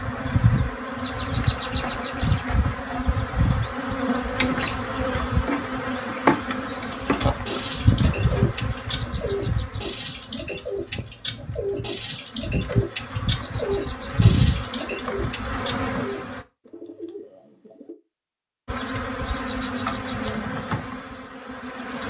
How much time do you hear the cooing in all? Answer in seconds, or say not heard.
11 s.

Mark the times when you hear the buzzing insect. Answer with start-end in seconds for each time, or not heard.
0.0-16.4, 18.6-22.0.